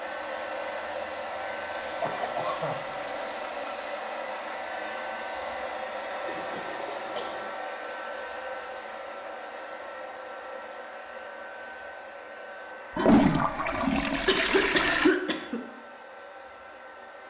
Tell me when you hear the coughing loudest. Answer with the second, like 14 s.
15 s.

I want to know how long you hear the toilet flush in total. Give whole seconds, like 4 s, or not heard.
6 s.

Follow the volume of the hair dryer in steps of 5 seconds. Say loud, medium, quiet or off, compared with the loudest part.
loud, loud, medium, medium.